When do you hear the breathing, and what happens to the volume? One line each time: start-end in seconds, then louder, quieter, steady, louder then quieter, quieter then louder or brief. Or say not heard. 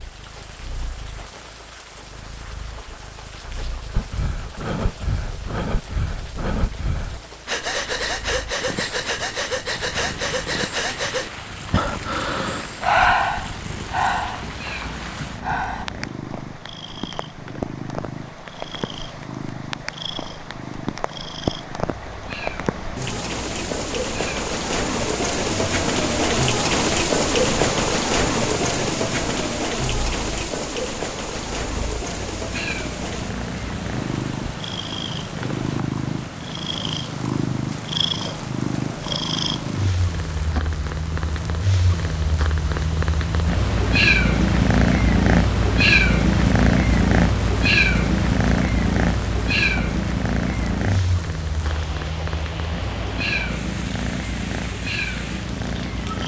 3.9-15.8 louder then quieter.